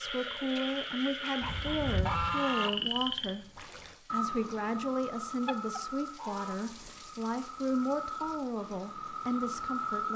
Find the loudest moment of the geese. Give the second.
2 s.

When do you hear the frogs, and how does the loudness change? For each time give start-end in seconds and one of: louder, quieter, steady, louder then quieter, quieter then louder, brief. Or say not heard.
0.0-10.1 quieter then louder.